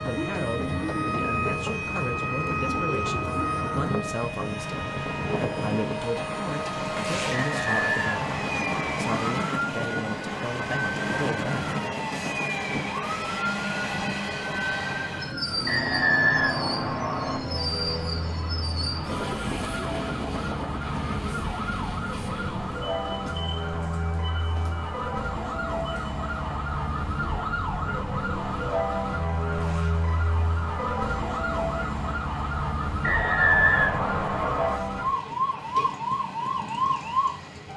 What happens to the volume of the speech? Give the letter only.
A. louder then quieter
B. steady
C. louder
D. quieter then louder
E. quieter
B.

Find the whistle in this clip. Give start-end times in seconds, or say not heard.
7.3-9.1, 15.7-17.4, 33.0-34.8.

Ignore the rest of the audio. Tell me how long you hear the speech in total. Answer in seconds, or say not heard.
12 s.